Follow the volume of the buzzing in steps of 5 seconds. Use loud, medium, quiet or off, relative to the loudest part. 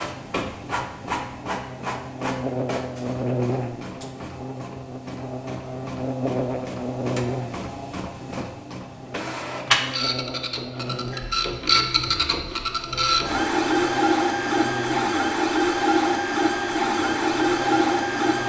loud, loud, medium, medium.